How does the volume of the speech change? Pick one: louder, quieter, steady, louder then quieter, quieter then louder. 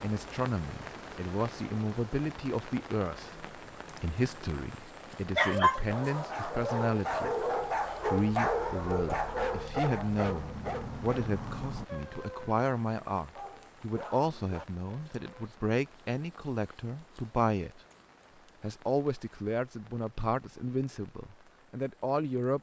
steady.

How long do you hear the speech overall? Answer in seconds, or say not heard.
22 s.